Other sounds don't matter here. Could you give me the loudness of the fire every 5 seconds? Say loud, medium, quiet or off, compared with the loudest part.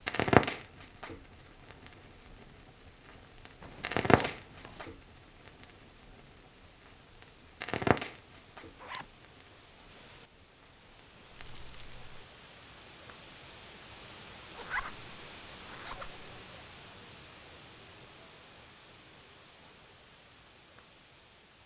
loud, medium, quiet, off, off.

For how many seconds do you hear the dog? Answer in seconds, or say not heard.
not heard.